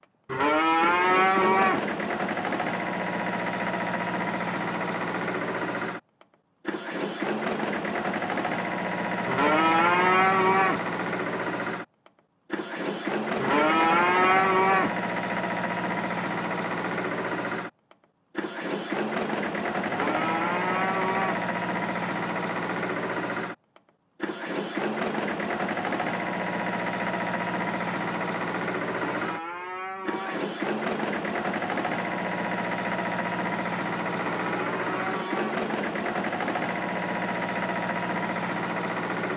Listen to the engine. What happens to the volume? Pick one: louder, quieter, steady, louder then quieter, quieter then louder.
steady.